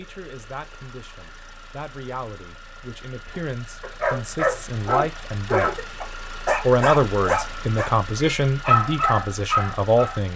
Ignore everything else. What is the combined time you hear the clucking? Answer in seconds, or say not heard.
not heard.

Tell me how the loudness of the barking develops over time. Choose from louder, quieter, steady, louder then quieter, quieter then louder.
quieter then louder.